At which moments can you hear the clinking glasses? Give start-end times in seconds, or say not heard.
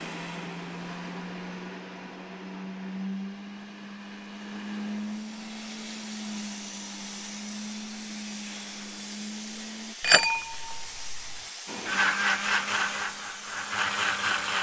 10.0-11.4.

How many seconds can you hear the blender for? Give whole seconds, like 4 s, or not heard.
13 s.